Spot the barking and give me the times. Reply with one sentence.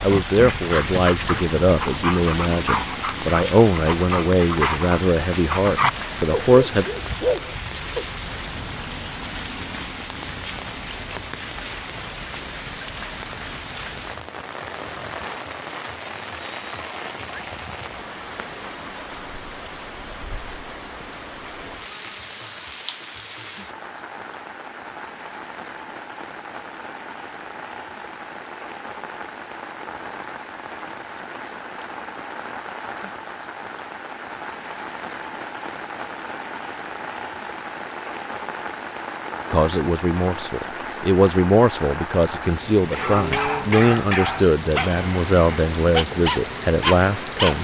The barking can be heard from 0.0 to 8.1 s and from 42.9 to 47.5 s.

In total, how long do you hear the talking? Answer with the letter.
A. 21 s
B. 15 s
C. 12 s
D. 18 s
B.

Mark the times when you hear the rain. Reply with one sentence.
The rain can be heard from 0.0 to 47.5 s.